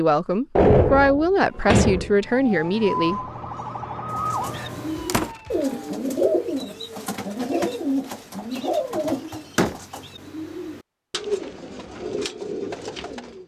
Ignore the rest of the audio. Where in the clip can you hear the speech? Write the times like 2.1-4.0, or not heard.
0.0-3.2.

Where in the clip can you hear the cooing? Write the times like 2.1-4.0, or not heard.
4.2-13.4.